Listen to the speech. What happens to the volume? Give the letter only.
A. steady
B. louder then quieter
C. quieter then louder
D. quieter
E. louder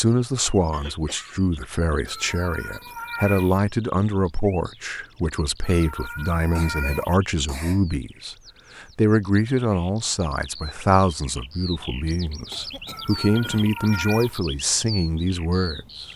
A.